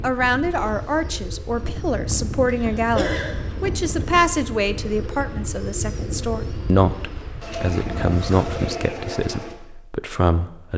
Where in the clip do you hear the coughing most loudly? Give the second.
3 s.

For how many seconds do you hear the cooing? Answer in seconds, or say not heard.
9 s.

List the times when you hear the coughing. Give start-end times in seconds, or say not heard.
2.6-3.3, 8.1-8.6.